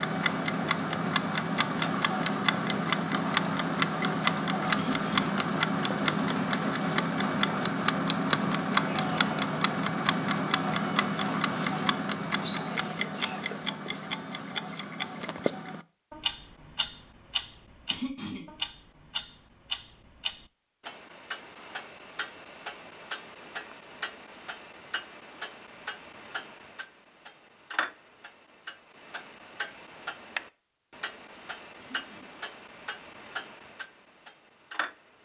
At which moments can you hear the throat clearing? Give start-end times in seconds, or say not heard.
4.8-5.3, 17.9-18.5, 31.9-32.4.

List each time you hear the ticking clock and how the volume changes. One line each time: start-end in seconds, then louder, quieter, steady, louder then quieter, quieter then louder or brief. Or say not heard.
0.0-35.2 quieter.